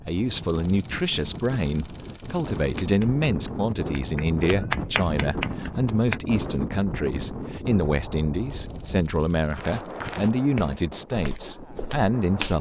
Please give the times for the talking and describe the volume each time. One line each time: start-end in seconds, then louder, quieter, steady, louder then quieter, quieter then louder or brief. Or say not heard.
0.0-12.5 steady.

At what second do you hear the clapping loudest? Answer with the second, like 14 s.
5 s.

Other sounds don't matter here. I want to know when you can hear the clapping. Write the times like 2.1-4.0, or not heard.
2.8-6.2.